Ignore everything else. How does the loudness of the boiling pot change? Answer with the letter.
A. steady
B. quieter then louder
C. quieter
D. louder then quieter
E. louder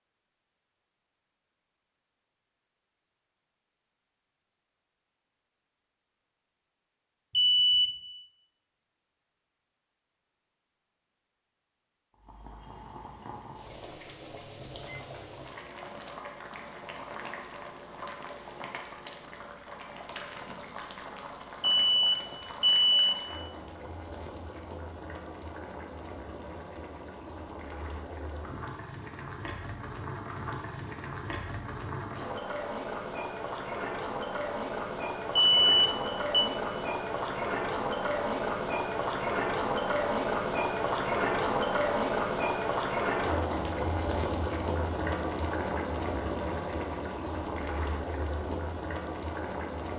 E.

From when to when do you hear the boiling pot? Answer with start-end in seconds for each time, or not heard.
12.2-49.9.